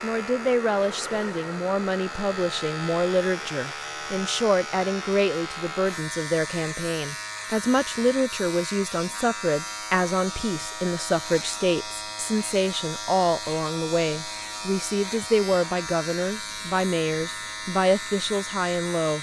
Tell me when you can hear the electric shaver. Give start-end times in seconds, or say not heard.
0.0-19.1.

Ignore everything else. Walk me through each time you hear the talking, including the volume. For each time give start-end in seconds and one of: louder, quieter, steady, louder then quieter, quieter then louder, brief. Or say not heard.
0.0-19.1 steady.